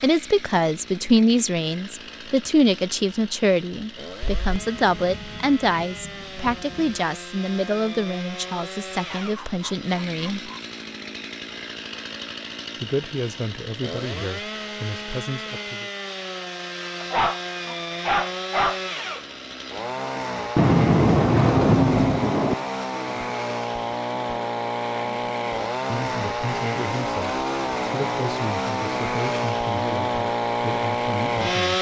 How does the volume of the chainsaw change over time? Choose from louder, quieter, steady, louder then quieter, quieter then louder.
louder.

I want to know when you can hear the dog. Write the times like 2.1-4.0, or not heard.
9.1-10.6, 17.0-18.8.